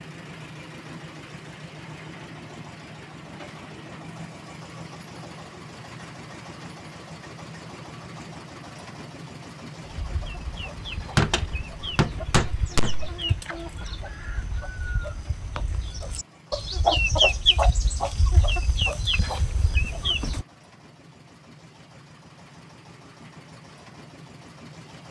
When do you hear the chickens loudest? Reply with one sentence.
The loudest moment of the chickens is at 17 seconds.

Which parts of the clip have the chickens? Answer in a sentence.
The chickens can be heard from 10.0 to 20.4 s.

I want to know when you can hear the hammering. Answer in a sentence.
The hammering can be heard from 11.2 to 13.1 s.